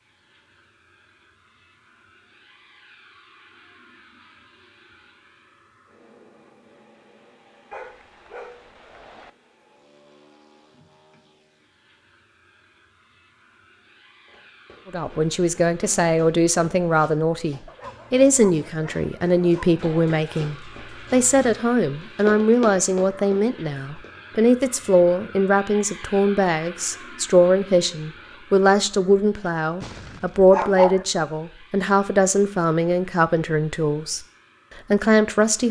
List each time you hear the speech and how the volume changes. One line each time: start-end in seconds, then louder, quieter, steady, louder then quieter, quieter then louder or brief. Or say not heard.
14.9-34.2 steady
34.9-35.6 brief.